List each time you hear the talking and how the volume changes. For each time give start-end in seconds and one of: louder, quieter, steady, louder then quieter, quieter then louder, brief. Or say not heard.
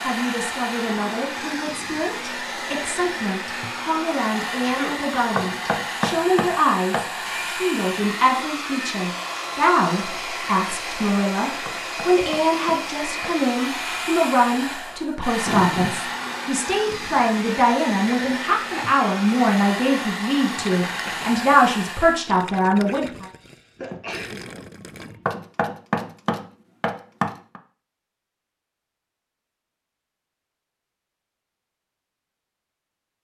0.0-23.2 louder.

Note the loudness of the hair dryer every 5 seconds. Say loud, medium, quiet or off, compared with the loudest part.
loud, loud, loud, loud, loud, off, off.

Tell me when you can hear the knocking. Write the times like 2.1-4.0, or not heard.
5.3-7.1, 11.7-13.4, 25.2-27.6.